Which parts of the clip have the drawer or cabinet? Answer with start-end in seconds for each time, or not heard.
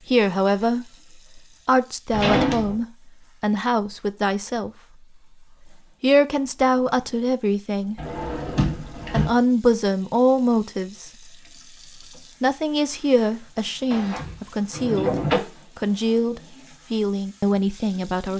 2.1-2.8, 8.0-9.3, 13.9-15.4.